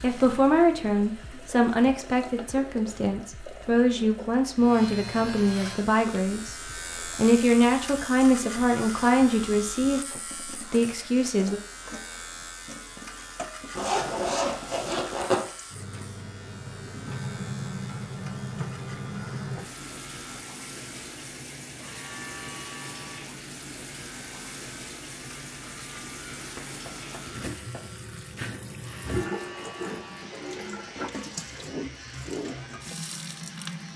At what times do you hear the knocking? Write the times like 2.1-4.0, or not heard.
26.6-27.9.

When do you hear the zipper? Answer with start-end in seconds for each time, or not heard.
13.8-15.3.